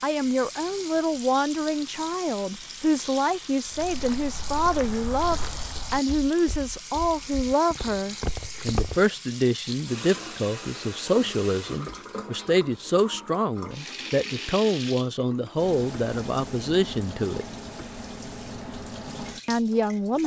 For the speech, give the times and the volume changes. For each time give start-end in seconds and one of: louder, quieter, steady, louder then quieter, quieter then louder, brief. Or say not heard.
0.0-17.4 steady
19.4-20.2 brief.